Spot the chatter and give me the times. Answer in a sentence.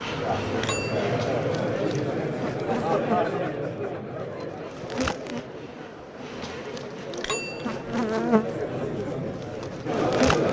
You can hear the chatter from 0.0 to 10.4 s.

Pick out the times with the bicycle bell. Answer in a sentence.
The bicycle bell can be heard from 0.6 to 1.1 s and from 7.2 to 7.8 s.